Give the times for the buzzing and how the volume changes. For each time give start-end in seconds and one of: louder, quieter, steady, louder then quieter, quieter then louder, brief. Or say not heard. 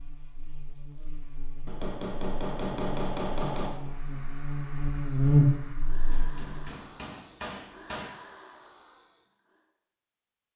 0.0-6.7 louder.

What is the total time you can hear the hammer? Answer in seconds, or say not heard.
4 s.